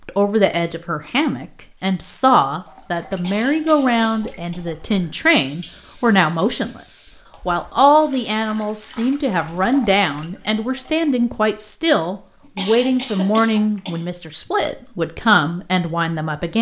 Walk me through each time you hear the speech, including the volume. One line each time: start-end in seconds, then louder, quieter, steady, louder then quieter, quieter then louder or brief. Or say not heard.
0.1-16.5 steady.